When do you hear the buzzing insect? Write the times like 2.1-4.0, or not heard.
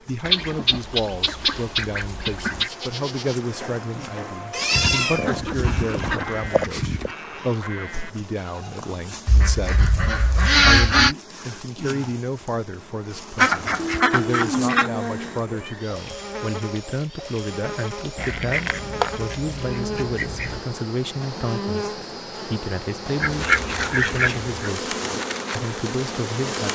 0.0-26.7.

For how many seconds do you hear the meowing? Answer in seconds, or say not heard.
3 s.